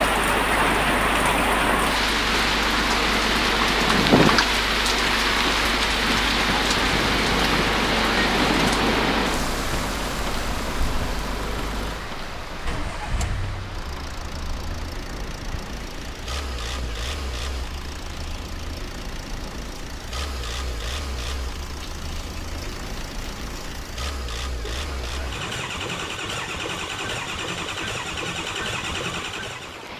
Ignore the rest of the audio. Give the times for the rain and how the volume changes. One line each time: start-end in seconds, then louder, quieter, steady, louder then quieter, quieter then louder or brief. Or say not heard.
0.0-29.9 quieter.